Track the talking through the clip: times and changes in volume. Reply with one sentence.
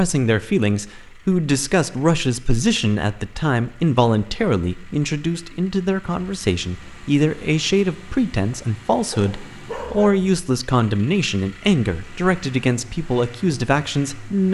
The talking can be heard from 0.0 to 14.5 s, at a steady volume.